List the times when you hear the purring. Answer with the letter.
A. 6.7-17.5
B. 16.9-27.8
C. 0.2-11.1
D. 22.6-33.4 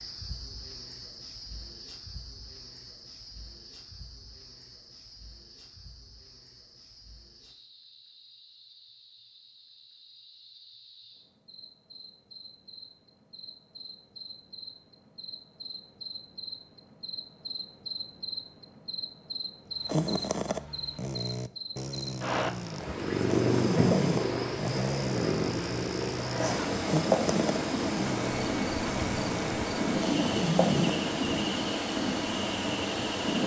D.